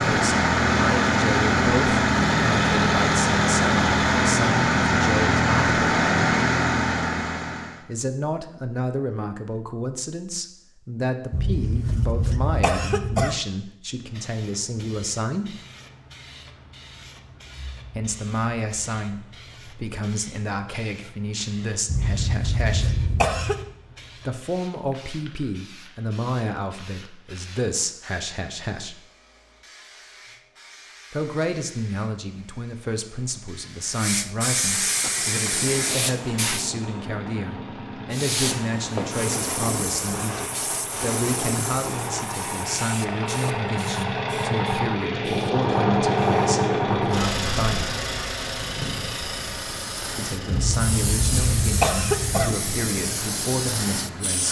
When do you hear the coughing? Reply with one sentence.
The coughing can be heard from 11.3 to 13.3 s, from 21.9 to 23.7 s and from 50.5 to 52.5 s.